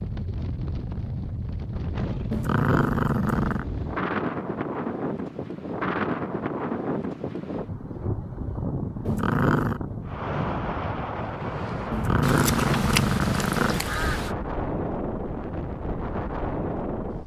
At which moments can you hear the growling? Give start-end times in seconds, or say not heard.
2.3-3.6, 9.1-9.8, 11.9-13.9.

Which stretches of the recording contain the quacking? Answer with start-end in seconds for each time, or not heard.
12.2-14.3.